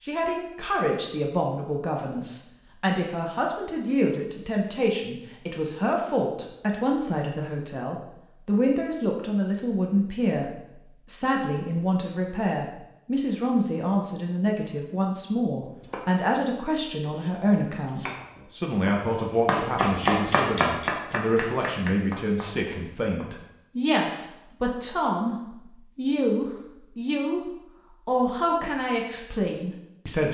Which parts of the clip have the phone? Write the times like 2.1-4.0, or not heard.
not heard.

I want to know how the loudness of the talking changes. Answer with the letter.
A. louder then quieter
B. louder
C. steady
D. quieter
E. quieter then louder
C.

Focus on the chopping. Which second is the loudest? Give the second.
20 s.